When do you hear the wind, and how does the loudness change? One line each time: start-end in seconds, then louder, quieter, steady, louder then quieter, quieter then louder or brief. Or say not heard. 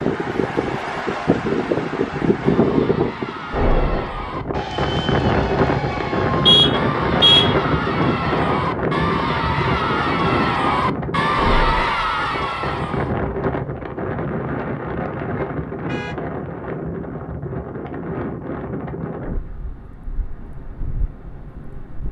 0.0-22.0 quieter.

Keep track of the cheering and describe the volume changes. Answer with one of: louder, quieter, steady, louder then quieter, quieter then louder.
louder.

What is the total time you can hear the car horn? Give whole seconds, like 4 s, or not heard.
2 s.